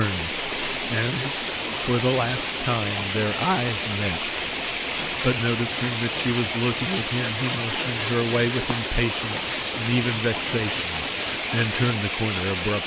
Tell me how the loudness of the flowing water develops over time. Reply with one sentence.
The loudness of the flowing water stays about the same.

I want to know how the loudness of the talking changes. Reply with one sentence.
The volume of the talking stays about the same.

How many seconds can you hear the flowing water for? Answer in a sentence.
The flowing water can be heard for 13 seconds in total.